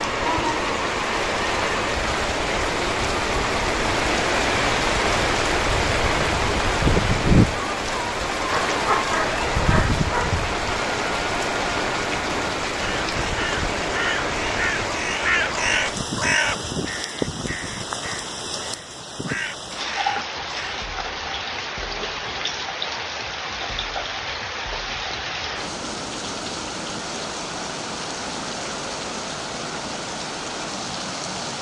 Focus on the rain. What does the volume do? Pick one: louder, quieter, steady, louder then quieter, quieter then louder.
quieter.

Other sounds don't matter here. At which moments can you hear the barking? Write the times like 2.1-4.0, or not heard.
8.5-10.4.